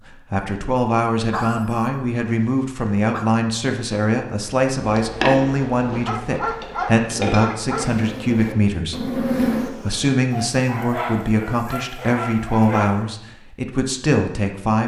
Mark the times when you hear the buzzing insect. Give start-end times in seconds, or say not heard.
4.9-10.2.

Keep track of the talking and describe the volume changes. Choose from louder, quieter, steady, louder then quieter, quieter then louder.
steady.